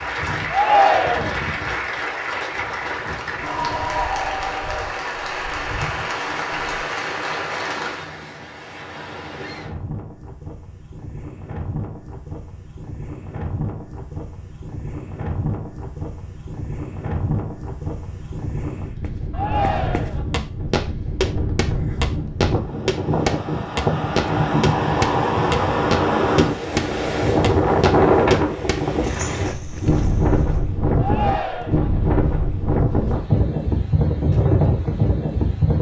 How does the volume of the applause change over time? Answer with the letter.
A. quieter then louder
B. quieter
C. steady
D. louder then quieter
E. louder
C.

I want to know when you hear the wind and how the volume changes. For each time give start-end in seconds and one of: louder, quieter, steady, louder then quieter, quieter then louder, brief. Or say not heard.
0.0-35.7 louder.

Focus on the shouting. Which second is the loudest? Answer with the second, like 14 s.
1 s.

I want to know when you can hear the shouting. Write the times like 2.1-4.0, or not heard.
0.5-1.4, 19.3-20.2, 30.9-31.9.